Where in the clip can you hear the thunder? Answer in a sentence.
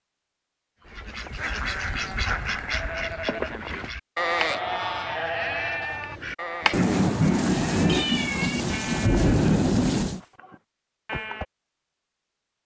You can hear the thunder from 6.7 to 10.2 s.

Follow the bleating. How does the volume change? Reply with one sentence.
The volume of the bleating goes up, then down.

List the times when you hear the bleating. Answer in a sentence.
You can hear the bleating from 0.8 to 11.4 s.